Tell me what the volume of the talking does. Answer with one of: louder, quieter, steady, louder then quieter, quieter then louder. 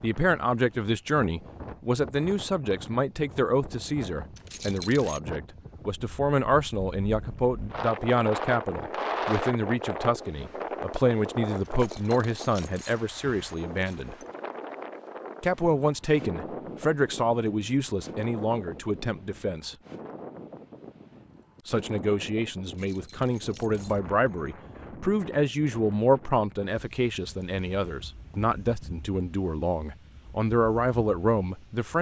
steady.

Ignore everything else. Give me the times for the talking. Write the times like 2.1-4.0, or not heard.
0.0-14.2, 15.4-19.8, 21.6-31.9.